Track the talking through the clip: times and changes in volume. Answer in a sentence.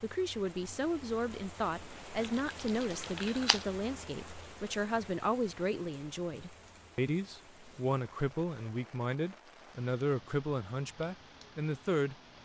The talking can be heard from 0.0 to 12.2 s, at a steady volume.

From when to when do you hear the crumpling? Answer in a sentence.
The crumpling can be heard from 2.2 to 3.6 s.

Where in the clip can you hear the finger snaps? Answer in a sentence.
The finger snaps can't be heard in this clip.